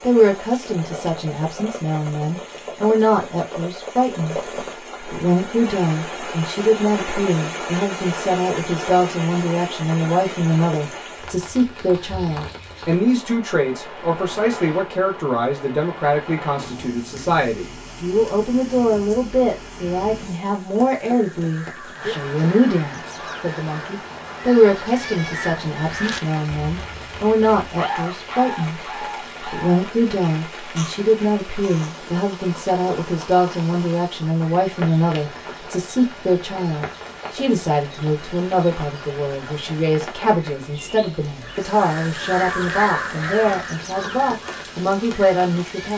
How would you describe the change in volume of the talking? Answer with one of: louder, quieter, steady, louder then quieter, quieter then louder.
steady.